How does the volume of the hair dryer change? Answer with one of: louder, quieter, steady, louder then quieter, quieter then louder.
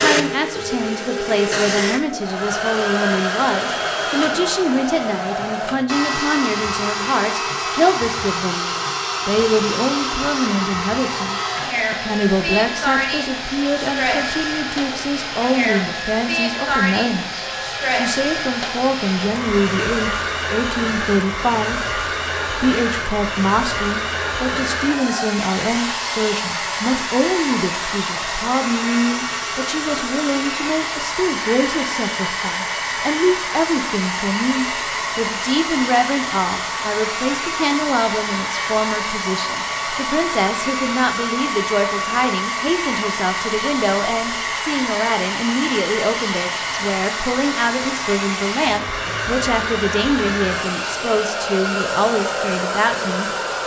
steady.